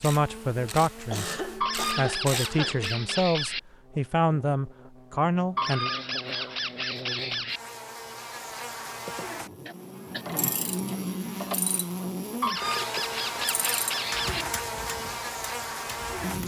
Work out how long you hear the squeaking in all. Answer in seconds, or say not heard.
6 s.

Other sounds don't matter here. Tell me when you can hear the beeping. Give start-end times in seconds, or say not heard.
not heard.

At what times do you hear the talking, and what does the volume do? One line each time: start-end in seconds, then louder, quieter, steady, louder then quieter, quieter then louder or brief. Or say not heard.
0.0-5.9 steady.